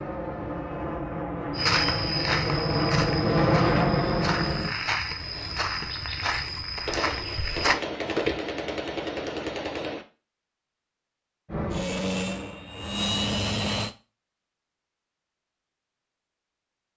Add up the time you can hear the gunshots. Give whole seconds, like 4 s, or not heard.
3 s.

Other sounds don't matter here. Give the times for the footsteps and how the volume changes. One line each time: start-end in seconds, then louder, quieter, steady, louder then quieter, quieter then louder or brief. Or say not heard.
1.5-8.3 quieter then louder.